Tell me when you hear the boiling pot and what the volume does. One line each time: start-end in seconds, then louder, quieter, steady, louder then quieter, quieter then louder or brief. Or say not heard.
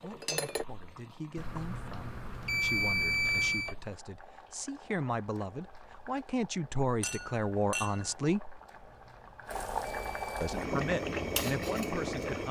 0.0-12.4 louder.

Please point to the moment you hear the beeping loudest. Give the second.
3 s.